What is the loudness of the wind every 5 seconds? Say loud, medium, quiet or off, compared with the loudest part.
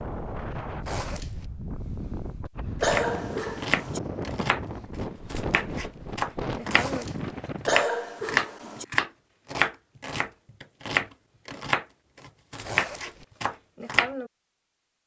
loud, loud, off.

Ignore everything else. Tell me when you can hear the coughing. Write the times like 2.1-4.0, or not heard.
2.8-4.0, 7.7-8.8.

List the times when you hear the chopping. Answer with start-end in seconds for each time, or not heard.
2.8-14.3.